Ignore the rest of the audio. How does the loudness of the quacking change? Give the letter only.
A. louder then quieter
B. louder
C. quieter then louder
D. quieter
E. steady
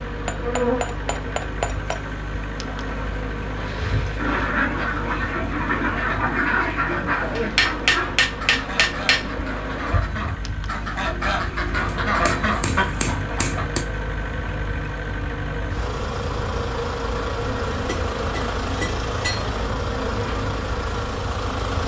C.